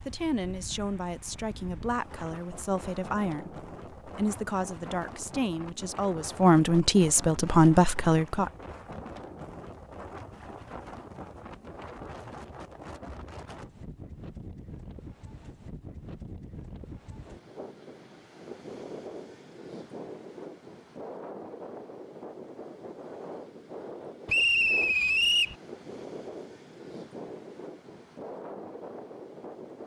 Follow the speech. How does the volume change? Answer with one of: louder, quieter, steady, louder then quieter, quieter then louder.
louder.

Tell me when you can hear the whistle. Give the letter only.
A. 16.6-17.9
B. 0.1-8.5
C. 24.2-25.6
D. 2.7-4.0
C.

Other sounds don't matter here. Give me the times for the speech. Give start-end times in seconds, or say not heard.
0.1-8.5.